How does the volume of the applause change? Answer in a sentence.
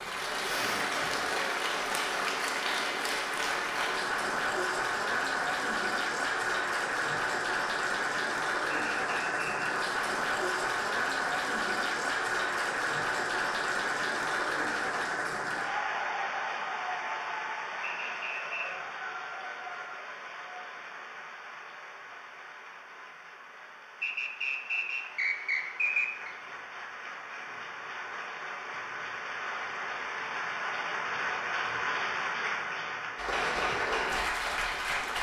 The loudness of the applause goes down, then up.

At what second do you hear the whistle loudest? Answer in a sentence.
The volume of the whistle peaks at 26 seconds.